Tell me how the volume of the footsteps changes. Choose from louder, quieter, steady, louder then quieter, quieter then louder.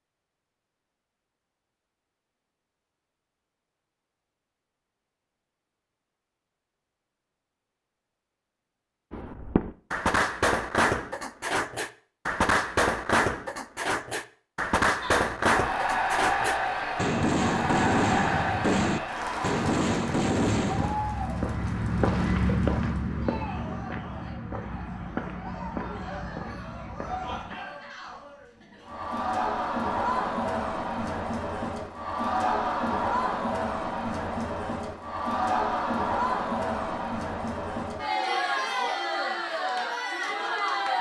quieter.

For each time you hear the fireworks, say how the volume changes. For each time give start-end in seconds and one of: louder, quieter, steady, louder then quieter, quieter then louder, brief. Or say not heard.
9.1-20.9 steady.